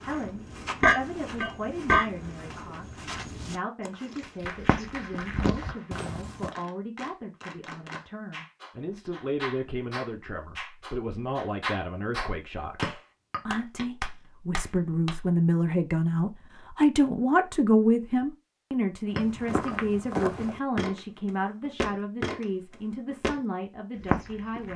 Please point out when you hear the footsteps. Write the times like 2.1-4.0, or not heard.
0.0-6.5, 19.1-23.4, 24.0-24.7.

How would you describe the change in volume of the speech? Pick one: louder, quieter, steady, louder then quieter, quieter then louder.
louder then quieter.